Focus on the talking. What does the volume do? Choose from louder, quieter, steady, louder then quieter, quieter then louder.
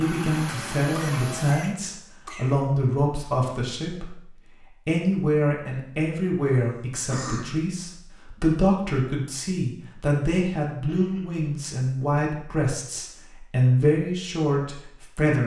steady.